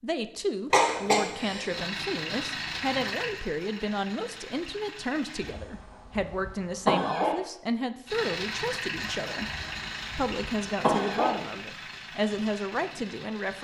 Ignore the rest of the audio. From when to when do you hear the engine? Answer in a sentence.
You can hear the engine from 1.6 to 5.6 s and from 8.1 to 13.5 s.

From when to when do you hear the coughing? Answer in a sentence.
You can hear the coughing from 0.7 to 1.7 s, from 5.4 to 7.3 s and from 9.4 to 11.3 s.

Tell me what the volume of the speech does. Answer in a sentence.
The volume of the speech stays about the same.